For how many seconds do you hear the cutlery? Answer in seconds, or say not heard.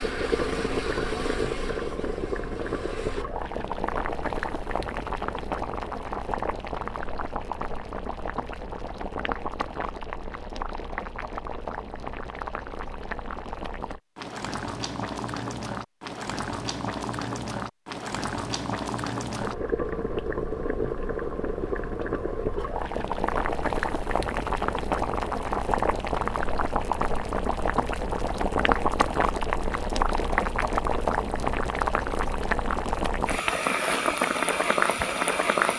not heard.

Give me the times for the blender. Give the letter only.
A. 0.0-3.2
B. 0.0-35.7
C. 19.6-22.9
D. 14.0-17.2
A.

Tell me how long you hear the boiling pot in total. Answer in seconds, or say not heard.
36 s.